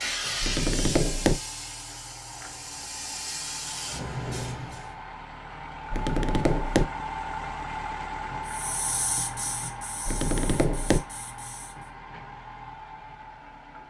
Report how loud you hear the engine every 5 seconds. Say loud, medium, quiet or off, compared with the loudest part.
medium, loud, medium.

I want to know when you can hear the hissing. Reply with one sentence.
The hissing can be heard from 0.0 to 4.9 s and from 8.4 to 11.8 s.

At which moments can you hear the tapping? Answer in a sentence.
The tapping can be heard from 0.4 to 1.4 s, from 5.9 to 6.9 s and from 10.1 to 11.1 s.